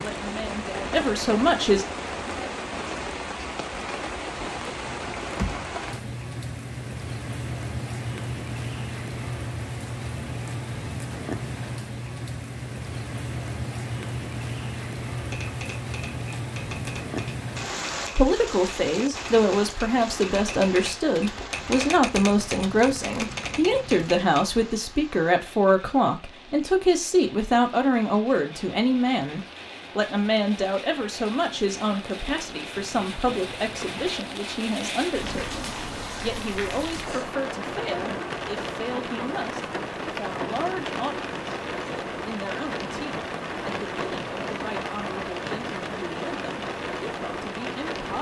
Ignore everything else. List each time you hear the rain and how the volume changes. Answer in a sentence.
You can hear the rain from 0.0 to 48.1 s, getting quieter then louder.